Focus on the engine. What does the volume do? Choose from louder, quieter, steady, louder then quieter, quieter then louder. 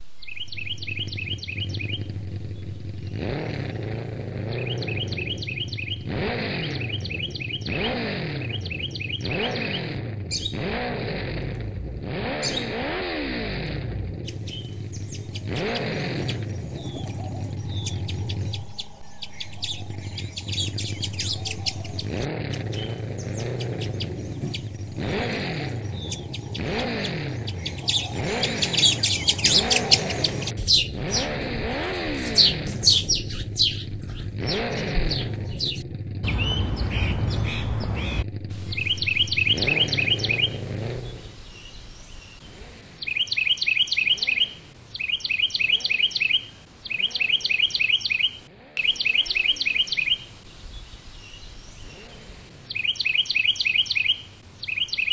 quieter.